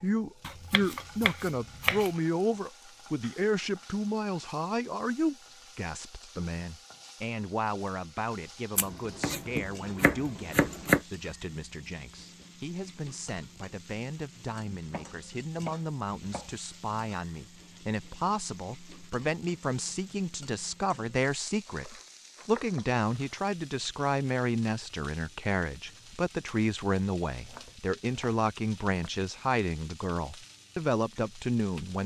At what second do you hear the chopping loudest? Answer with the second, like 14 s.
11 s.